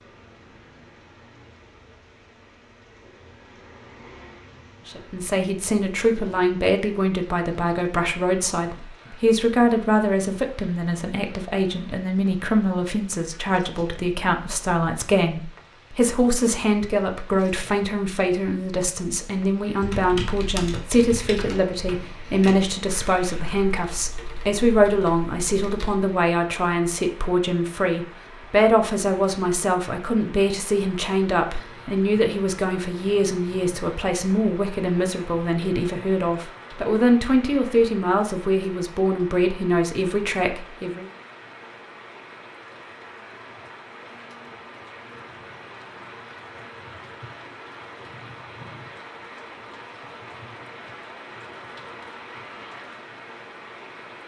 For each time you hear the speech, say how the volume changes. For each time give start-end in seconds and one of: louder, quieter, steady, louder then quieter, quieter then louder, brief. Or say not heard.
4.8-41.0 steady.